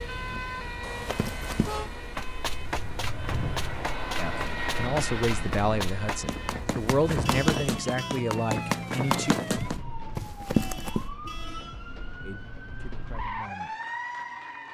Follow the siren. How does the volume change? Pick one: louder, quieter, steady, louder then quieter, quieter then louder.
steady.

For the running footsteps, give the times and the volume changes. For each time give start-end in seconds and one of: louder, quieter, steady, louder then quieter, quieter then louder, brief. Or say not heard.
1.0-11.1 louder.